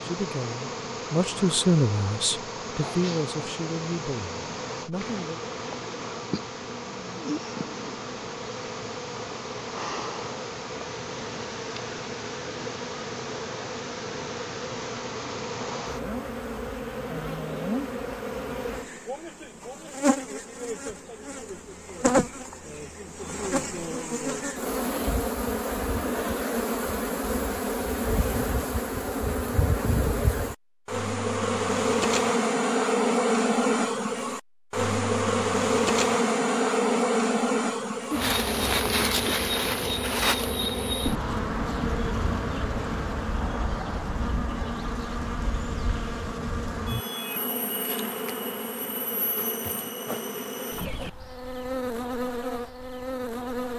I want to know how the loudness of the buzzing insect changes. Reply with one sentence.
The loudness of the buzzing insect goes up, then down.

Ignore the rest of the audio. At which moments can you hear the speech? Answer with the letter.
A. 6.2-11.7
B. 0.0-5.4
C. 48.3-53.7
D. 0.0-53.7
B.